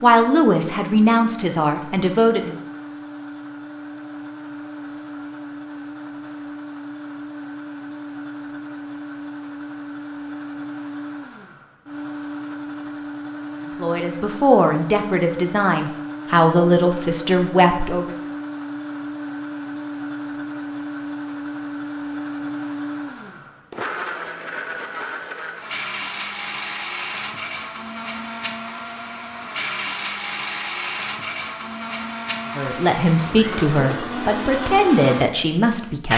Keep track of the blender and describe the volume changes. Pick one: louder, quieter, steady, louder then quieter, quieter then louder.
louder.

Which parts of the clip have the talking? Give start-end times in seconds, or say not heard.
0.0-2.5, 13.8-18.1, 32.5-36.1.